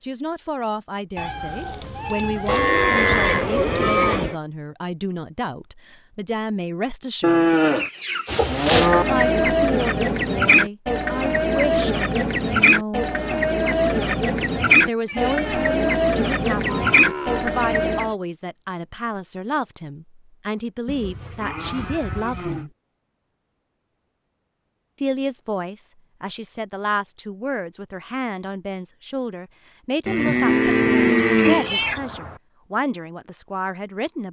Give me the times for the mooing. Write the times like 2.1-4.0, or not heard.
2.5-4.3, 7.2-9.1, 16.6-17.6, 20.9-22.6, 30.1-31.7.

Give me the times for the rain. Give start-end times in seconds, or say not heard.
not heard.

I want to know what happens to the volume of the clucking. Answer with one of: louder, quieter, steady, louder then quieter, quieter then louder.
steady.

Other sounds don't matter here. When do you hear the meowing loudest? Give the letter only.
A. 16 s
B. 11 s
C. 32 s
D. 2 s
C.